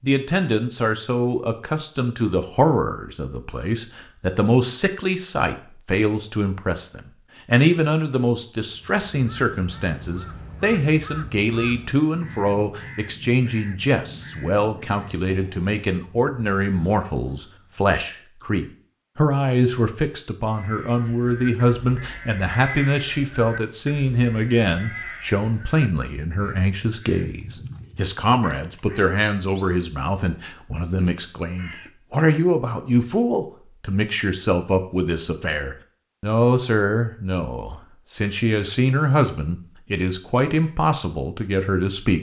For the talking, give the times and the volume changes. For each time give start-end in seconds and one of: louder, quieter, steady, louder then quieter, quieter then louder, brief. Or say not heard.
0.0-42.1 steady.